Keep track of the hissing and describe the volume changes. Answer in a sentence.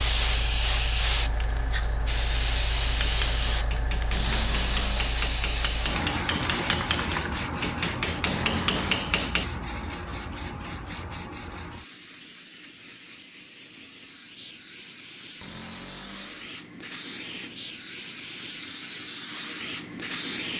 The loudness of the hissing goes down, then up.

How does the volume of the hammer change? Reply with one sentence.
The volume of the hammer goes up.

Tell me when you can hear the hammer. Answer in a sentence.
The hammer can be heard from 3.0 to 9.4 s.